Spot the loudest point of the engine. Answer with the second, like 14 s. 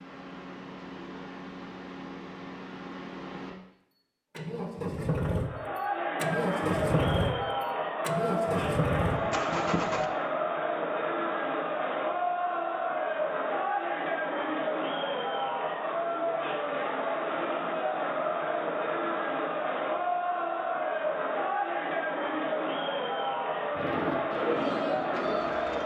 7 s.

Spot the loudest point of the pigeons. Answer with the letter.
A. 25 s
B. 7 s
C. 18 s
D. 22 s
A.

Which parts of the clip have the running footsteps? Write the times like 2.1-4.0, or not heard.
not heard.